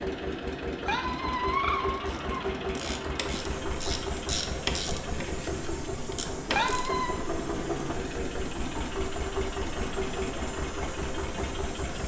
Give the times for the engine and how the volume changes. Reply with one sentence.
The engine can be heard from 0.0 to 12.0 s, at a steady volume.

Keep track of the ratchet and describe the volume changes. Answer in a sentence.
The loudness of the ratchet goes up, then down.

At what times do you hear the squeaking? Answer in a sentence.
You can hear the squeaking from 0.8 to 2.5 s and from 6.5 to 7.2 s.